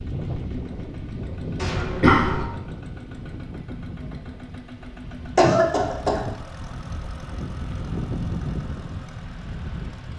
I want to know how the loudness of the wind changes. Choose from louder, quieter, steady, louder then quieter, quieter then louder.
quieter then louder.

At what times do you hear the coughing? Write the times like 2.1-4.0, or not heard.
1.6-2.5, 5.3-6.2.